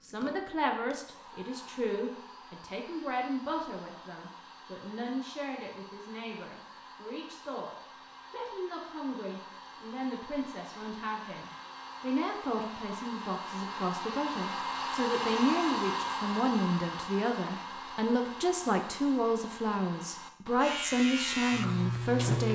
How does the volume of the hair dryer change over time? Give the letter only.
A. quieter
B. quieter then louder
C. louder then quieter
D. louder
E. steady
C.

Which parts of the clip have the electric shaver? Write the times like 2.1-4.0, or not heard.
20.6-22.5.